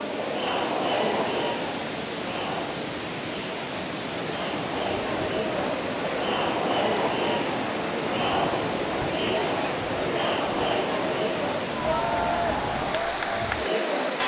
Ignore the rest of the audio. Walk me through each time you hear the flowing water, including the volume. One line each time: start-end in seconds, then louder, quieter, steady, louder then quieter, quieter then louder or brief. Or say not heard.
0.0-14.2 steady.